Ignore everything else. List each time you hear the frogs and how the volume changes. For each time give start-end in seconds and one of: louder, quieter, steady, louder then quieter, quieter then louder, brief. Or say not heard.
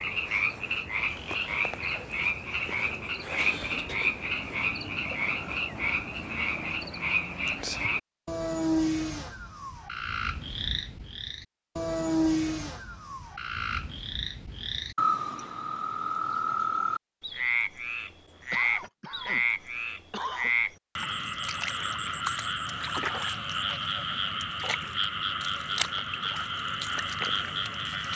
0.0-28.1 steady.